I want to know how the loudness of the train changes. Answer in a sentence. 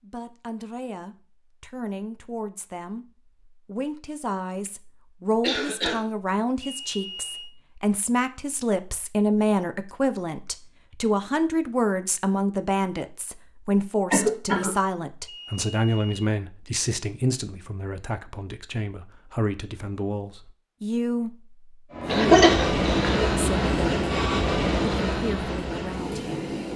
The volume of the train goes down.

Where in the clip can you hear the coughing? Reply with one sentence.
The coughing can be heard from 5.4 to 6.0 s, from 14.1 to 14.7 s and from 22.1 to 23.3 s.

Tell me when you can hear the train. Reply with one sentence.
The train can be heard from 21.9 to 26.7 s.